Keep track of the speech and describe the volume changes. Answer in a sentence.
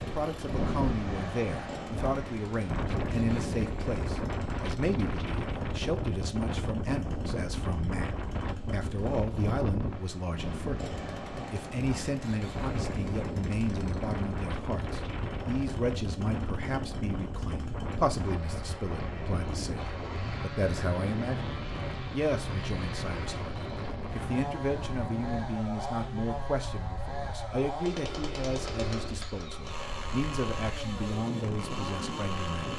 The loudness of the speech stays about the same.